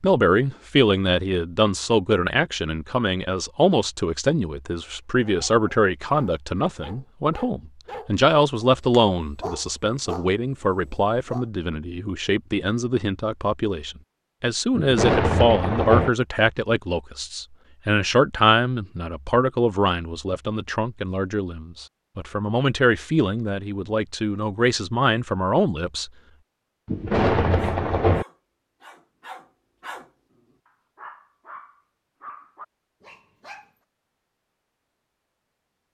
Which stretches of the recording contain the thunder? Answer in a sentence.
The thunder can be heard from 14.8 to 16.1 s and from 26.9 to 28.2 s.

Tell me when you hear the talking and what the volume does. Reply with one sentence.
You can hear the talking from 0.0 to 26.1 s, at a steady volume.